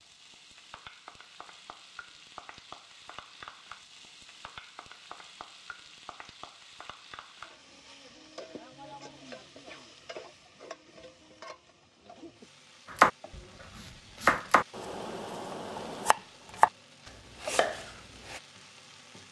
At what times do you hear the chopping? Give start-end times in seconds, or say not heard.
12.9-13.4, 14.2-16.7, 17.4-18.4.